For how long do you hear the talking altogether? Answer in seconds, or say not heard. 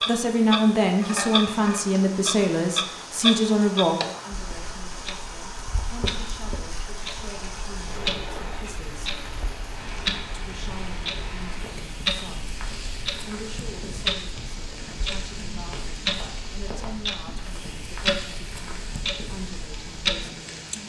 19 s.